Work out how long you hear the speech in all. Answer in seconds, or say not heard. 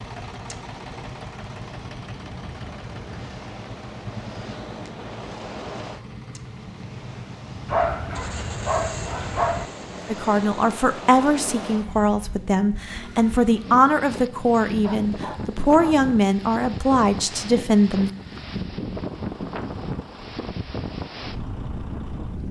8 s.